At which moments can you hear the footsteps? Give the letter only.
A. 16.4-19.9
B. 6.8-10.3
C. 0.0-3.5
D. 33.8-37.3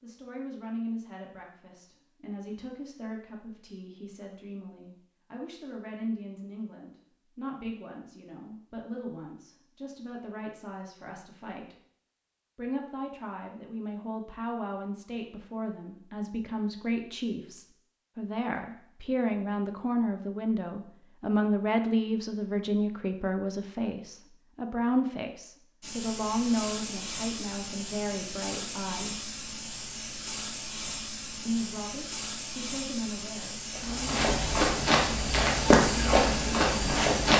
D.